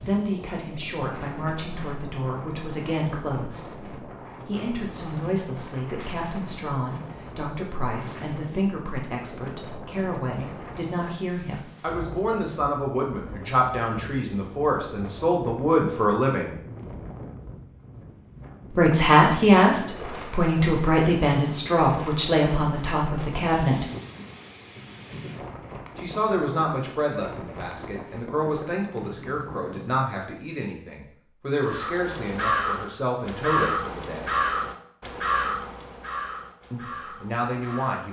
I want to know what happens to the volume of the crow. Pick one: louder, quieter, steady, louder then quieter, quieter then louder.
quieter.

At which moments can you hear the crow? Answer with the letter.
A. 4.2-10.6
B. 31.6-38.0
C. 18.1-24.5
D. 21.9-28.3
B.